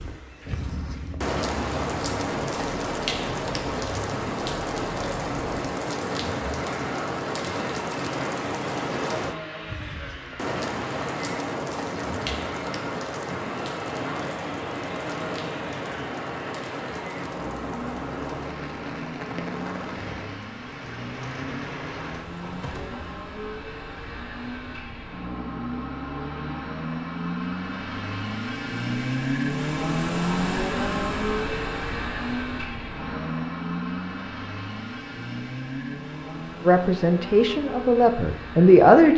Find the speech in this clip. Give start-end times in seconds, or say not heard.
36.6-39.1.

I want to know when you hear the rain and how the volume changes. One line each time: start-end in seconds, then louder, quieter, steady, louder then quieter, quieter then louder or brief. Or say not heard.
0.0-23.1 quieter.